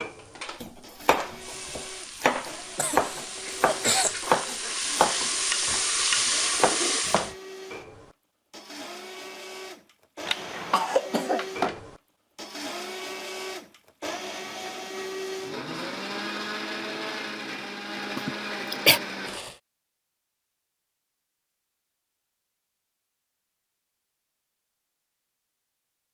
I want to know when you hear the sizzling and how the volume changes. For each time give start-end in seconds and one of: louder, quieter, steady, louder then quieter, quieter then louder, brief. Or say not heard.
0.0-7.3 louder.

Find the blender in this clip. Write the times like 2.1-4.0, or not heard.
0.0-19.6.